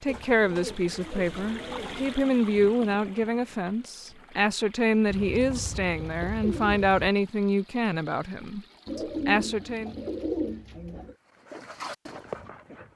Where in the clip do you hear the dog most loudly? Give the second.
12 s.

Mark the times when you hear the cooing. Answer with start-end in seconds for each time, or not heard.
0.1-2.1, 5.0-7.1, 8.8-11.2.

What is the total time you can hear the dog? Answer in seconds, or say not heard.
2 s.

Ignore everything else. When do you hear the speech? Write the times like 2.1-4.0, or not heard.
0.0-9.9.